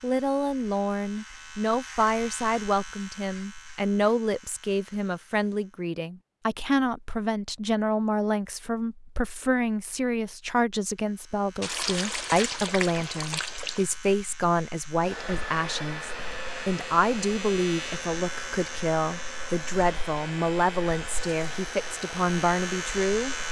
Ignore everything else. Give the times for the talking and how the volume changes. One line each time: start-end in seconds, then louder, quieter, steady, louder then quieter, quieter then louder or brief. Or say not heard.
0.0-23.4 steady.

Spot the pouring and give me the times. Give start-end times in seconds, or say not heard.
11.6-13.8.